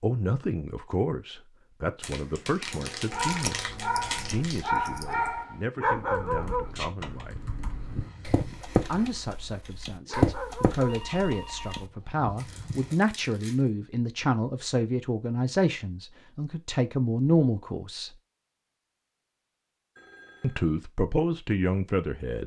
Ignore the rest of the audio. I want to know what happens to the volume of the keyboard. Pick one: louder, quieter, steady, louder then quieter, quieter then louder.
louder.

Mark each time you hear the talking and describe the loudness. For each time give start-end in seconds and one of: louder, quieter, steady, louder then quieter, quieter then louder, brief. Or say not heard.
0.0-7.5 quieter
8.8-18.1 louder
20.4-22.4 brief.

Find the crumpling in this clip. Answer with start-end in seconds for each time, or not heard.
2.0-4.7, 12.3-13.7.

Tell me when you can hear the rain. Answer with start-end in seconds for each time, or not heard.
not heard.